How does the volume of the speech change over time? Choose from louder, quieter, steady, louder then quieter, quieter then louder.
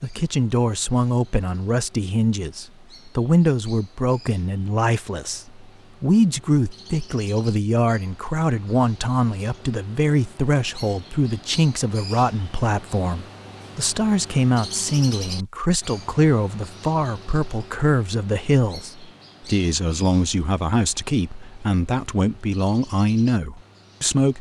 steady.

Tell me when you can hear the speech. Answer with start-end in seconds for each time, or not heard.
0.0-24.3.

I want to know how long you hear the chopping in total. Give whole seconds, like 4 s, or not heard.
not heard.